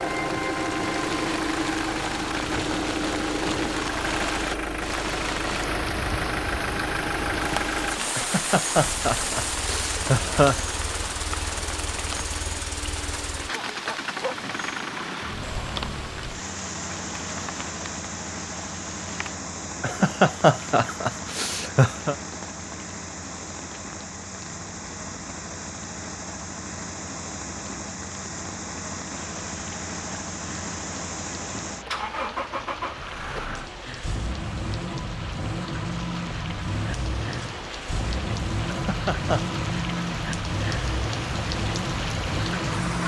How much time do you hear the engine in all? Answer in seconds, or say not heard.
43 s.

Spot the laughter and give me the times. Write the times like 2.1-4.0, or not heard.
8.2-10.6, 19.8-22.1, 38.6-39.5.